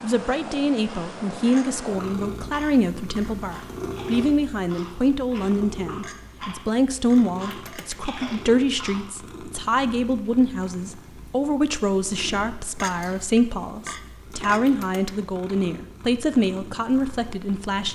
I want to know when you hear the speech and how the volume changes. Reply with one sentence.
You can hear the speech from 0.0 to 17.9 s, at a steady volume.